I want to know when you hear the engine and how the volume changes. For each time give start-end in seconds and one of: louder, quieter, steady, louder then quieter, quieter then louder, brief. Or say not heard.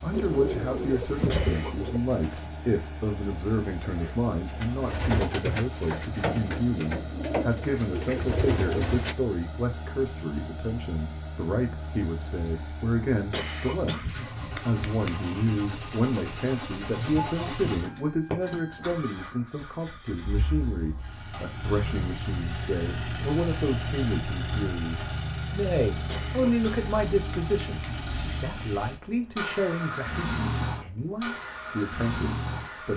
0.0-32.9 louder.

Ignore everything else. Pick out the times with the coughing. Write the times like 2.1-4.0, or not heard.
1.2-1.9, 13.3-15.2, 26.1-27.9.